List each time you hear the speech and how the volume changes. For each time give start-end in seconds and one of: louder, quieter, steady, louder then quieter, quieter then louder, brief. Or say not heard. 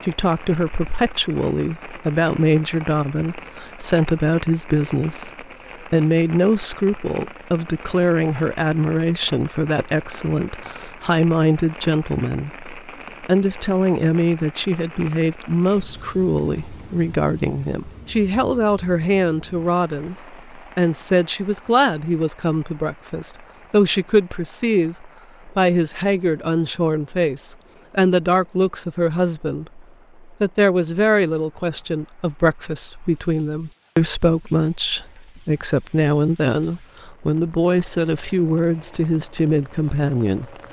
0.0-40.5 steady.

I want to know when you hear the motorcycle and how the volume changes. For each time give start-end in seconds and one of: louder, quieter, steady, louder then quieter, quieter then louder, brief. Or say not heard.
not heard.